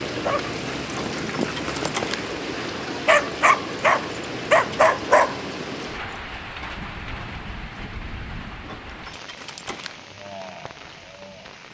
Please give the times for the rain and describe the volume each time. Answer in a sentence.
You can hear the rain from 0.0 to 11.6 s, getting quieter.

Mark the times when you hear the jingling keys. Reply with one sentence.
You can hear the jingling keys from 0.9 to 2.2 s and from 8.7 to 9.9 s.